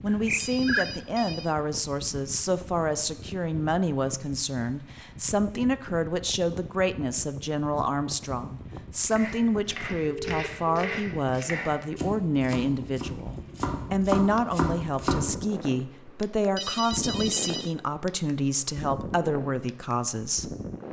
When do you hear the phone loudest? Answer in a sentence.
The volume of the phone peaks at 1 second.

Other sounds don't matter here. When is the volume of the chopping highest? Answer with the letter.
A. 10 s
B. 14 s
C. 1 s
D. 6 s
B.